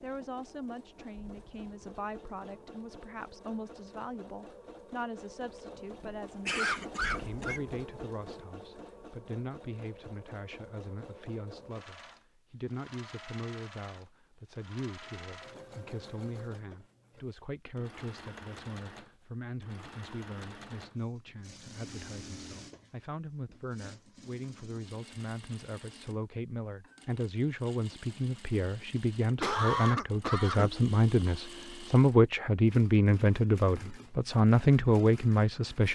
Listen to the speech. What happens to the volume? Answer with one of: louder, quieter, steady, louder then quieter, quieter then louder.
louder.